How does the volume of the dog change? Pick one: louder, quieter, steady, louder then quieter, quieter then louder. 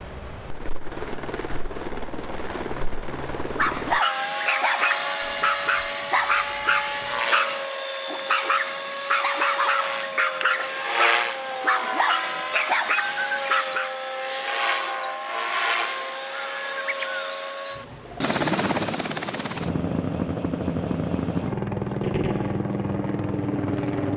steady.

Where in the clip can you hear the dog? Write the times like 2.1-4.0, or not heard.
3.5-14.0.